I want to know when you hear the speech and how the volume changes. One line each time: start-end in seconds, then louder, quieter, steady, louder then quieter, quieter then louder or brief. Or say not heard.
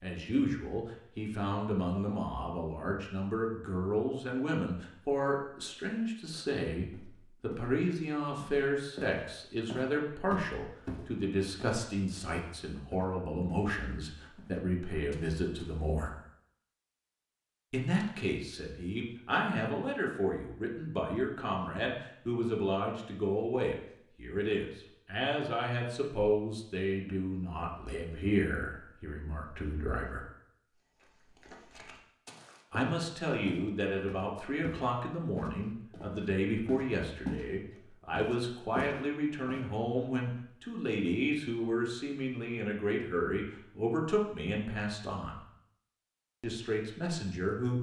0.0-16.1 steady
17.7-30.2 steady
32.7-45.4 steady
46.4-47.7 brief.